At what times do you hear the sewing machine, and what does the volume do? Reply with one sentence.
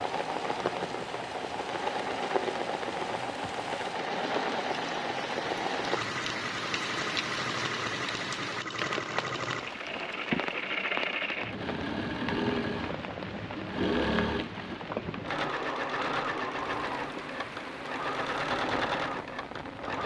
The sewing machine can be heard from 0.0 to 20.0 s, at a steady volume.